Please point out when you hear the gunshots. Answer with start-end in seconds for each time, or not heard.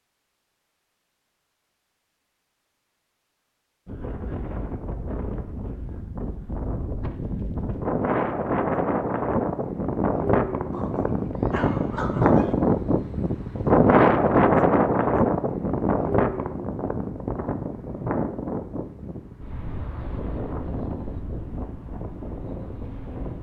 not heard.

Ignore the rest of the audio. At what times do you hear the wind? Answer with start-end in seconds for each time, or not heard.
3.9-23.3.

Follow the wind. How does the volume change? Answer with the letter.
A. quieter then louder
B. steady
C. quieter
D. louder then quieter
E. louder
D.